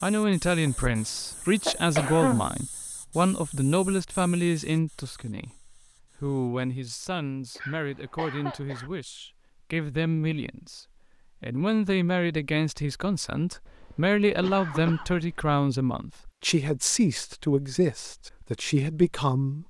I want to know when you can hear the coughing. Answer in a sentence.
The coughing can be heard from 0.7 to 2.5 s, from 7.5 to 8.9 s and from 13.7 to 15.6 s.